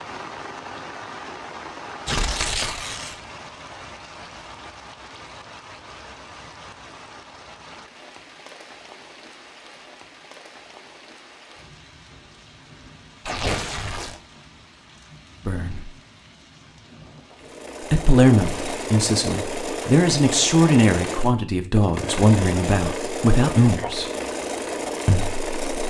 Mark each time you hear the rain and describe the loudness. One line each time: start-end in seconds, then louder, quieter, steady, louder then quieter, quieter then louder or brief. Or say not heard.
0.0-17.7 quieter.